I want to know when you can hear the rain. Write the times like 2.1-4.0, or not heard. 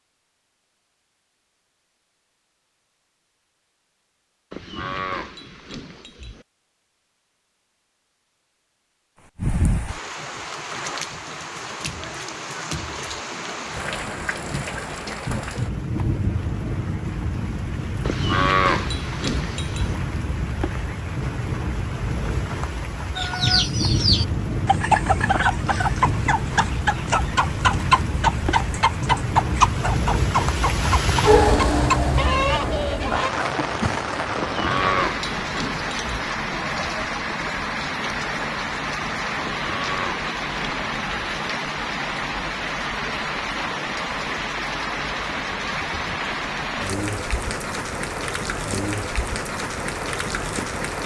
9.2-51.0.